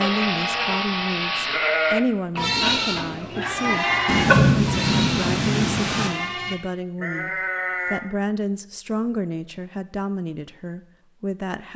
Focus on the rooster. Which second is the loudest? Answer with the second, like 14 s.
4 s.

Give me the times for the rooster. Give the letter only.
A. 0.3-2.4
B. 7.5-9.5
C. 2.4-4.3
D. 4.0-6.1
C.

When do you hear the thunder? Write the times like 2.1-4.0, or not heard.
4.0-6.1.